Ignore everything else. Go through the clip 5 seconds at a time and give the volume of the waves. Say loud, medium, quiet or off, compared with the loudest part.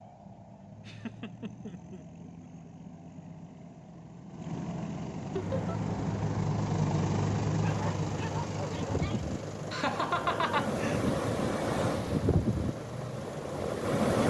off, medium, loud.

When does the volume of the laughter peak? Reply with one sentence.
The loudest moment of the laughter is at 10 seconds.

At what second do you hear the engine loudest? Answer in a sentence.
The loudest moment of the engine is at 7 seconds.